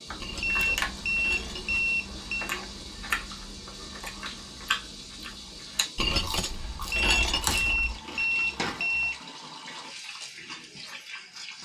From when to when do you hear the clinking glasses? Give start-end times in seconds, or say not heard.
0.2-1.9, 6.0-8.0.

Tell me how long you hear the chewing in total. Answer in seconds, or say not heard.
9 s.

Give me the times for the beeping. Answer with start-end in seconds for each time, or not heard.
0.4-2.5, 6.9-9.2.